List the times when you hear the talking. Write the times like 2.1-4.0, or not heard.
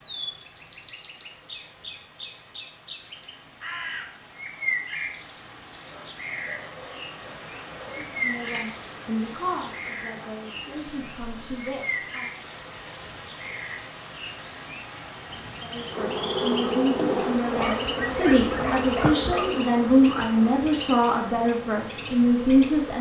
8.0-12.4, 15.6-22.9.